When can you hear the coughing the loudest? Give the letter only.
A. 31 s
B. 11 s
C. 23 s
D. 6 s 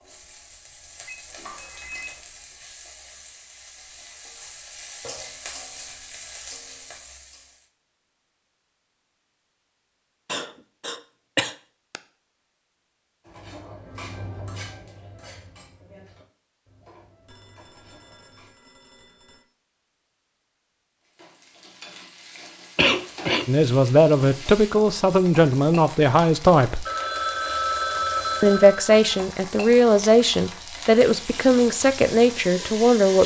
C.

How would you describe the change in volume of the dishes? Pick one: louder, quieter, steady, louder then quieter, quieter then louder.
quieter.